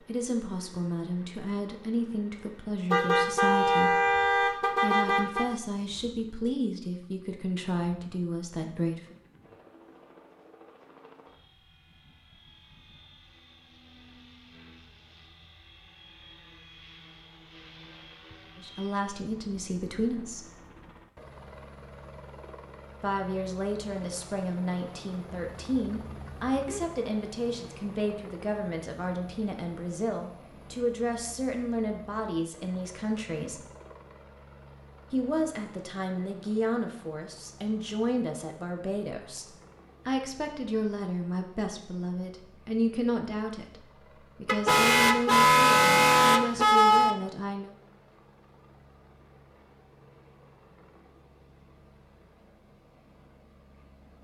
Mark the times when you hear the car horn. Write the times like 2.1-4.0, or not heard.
2.9-5.5, 25.5-26.9, 44.5-47.1.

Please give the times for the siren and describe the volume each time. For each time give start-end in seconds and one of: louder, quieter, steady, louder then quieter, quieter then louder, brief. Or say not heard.
not heard.